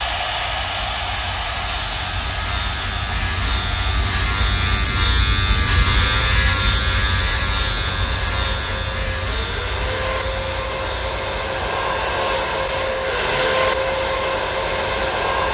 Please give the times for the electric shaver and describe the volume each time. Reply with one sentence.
You can hear the electric shaver from 0.0 to 15.5 s, getting louder then quieter.